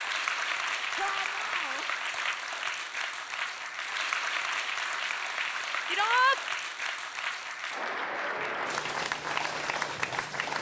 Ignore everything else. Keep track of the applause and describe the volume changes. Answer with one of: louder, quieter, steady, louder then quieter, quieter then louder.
steady.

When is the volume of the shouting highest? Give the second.
6 s.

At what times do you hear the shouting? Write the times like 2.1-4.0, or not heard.
0.9-1.9, 5.8-6.4.